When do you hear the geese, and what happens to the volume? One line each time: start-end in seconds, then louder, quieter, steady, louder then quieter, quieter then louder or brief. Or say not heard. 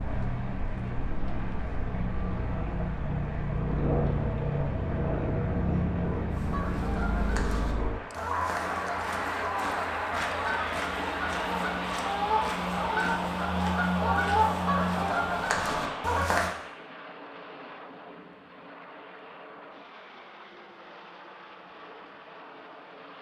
6.3-16.6 louder.